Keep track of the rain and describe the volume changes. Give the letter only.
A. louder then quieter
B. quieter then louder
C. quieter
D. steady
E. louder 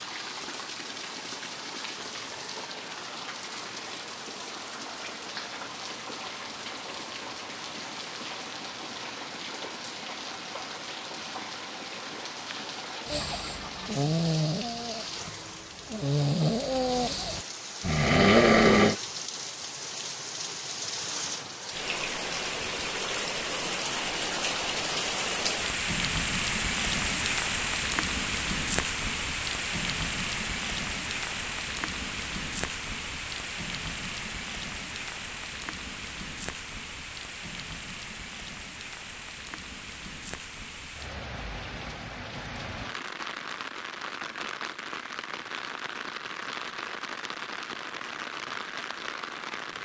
A.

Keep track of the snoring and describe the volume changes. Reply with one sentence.
The volume of the snoring goes down, then up.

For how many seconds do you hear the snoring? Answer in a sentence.
You can hear the snoring for 6 seconds altogether.